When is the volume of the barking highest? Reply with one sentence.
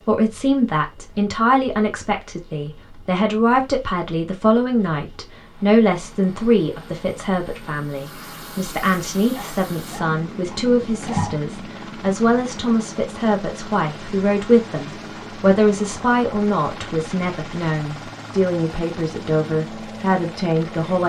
The volume of the barking peaks at 11 seconds.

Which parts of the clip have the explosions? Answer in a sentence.
You can't hear the explosions here.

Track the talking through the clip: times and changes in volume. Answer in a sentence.
The talking can be heard from 0.1 to 21.0 s, at a steady volume.